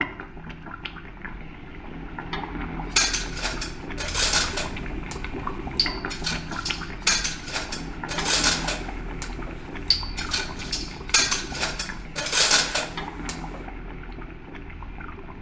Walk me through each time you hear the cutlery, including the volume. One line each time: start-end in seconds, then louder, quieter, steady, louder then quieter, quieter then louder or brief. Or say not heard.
3.0-13.6 steady.